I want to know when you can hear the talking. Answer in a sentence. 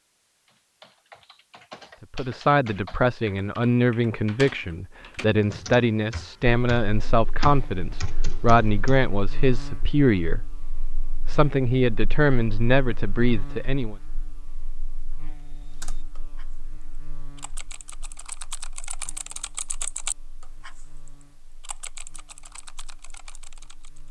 The talking can be heard from 2.0 to 13.9 s.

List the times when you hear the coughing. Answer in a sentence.
You can't hear the coughing here.